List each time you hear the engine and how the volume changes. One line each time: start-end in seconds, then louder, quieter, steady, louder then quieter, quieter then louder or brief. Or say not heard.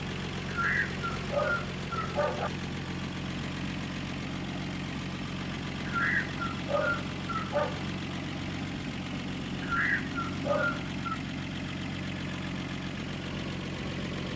0.0-14.3 steady.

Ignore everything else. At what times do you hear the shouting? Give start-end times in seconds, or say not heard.
not heard.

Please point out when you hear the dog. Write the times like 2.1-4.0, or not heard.
0.5-2.5, 5.8-7.8, 9.6-11.2.